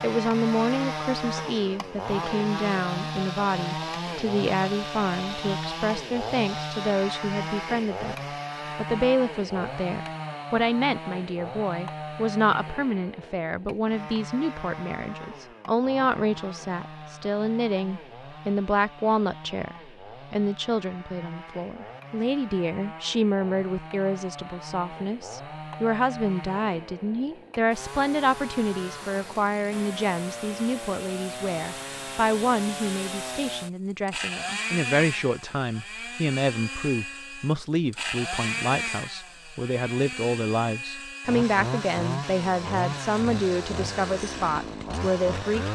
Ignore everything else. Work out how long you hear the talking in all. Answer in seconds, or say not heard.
45 s.